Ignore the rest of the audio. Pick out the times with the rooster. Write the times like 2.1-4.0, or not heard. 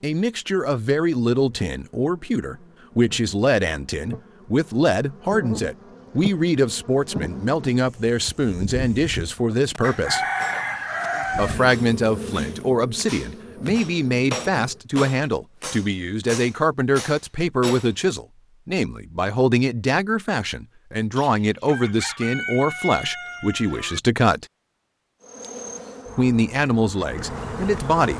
9.8-11.7, 21.1-24.0.